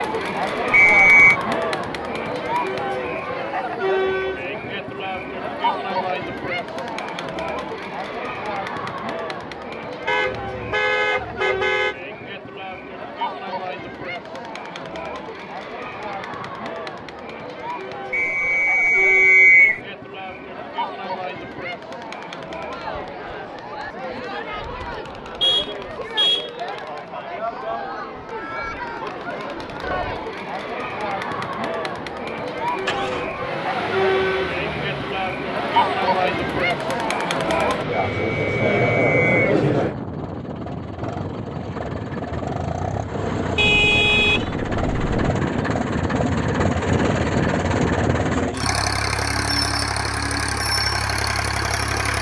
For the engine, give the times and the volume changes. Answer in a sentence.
You can hear the engine from 32.7 to 52.1 s, getting louder.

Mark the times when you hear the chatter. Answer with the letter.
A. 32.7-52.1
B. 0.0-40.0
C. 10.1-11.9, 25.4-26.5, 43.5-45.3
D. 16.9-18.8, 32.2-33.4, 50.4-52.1
B.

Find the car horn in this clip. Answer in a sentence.
You can hear the car horn from 10.1 to 11.9 s, from 25.4 to 26.5 s and from 43.5 to 45.3 s.